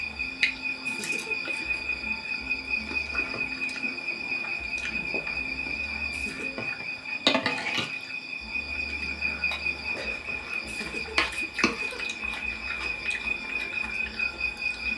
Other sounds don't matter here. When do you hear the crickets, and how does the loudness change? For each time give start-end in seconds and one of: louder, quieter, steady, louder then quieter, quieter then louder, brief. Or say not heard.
0.0-14.9 steady.